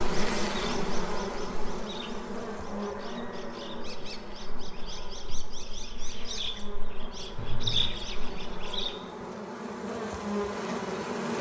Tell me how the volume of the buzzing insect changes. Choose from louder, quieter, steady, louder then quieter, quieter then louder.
quieter then louder.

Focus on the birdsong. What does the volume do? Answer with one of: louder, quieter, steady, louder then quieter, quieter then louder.
quieter then louder.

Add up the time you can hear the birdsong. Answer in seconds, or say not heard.
9 s.